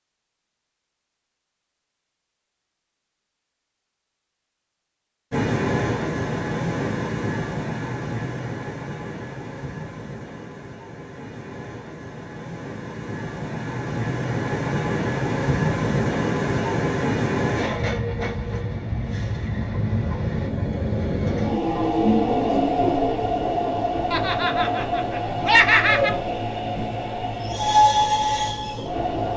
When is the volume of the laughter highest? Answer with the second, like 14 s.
26 s.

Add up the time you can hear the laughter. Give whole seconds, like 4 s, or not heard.
2 s.